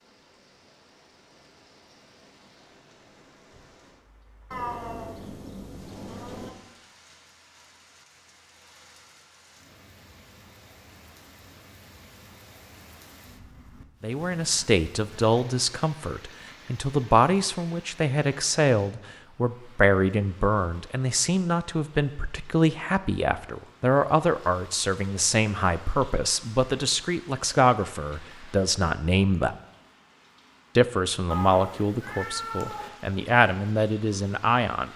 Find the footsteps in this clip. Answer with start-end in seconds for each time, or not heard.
not heard.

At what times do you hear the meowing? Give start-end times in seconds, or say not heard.
4.5-6.5, 31.3-32.9.